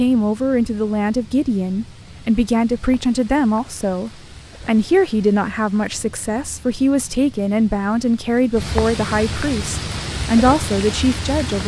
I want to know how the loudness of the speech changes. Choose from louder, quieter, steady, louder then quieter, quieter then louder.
steady.